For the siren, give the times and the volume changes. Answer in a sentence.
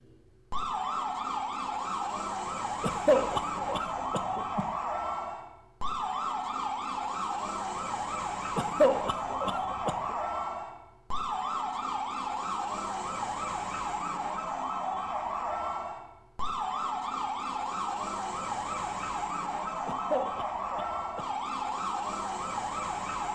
You can hear the siren from 0.0 to 23.2 s, at a steady volume.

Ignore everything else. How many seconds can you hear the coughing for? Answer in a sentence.
The coughing can be heard for 5 seconds in total.